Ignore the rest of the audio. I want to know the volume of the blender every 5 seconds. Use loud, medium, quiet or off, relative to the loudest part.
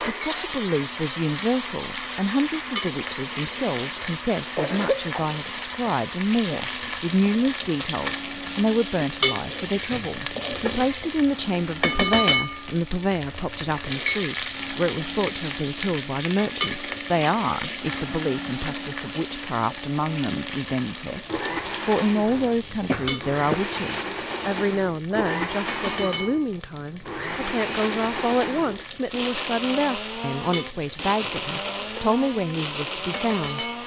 loud, medium, medium, medium, loud, loud, loud.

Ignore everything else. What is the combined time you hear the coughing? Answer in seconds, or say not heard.
2 s.